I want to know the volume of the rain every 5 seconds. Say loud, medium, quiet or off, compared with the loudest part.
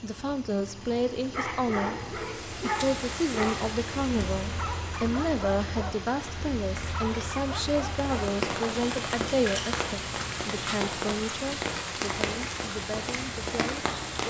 medium, loud, loud.